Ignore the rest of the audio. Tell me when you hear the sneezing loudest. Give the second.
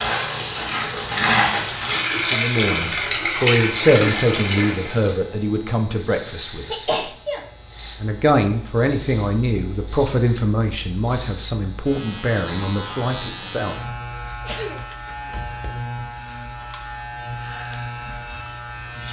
7 s.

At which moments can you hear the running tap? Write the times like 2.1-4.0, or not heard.
0.0-5.0.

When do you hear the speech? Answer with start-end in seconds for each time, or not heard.
2.1-7.0, 8.0-13.8.